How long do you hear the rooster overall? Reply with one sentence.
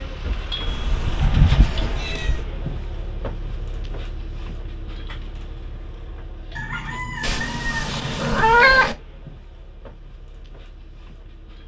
You can hear the rooster for 2 seconds altogether.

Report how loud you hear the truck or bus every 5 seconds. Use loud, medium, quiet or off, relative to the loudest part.
loud, medium, quiet.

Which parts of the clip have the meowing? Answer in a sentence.
The meowing can be heard from 0.7 to 2.5 s and from 7.2 to 8.9 s.